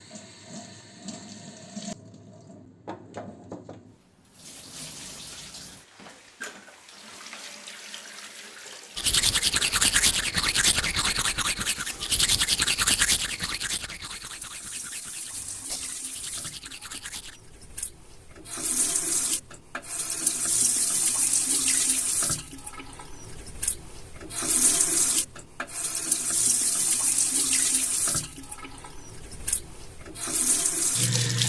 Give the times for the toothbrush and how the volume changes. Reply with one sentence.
The toothbrush can be heard from 8.9 to 17.4 s, getting quieter.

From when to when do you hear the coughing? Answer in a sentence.
You can't hear the coughing here.